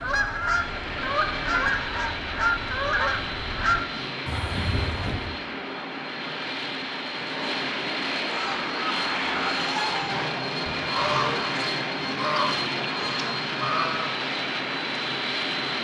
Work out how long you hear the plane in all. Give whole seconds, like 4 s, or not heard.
16 s.